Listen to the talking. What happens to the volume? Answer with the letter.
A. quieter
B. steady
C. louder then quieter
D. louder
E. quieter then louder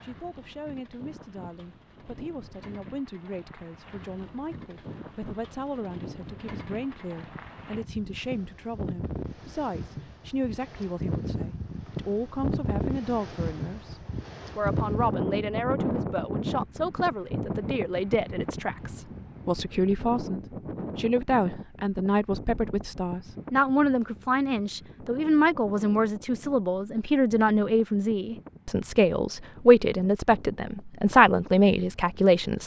D.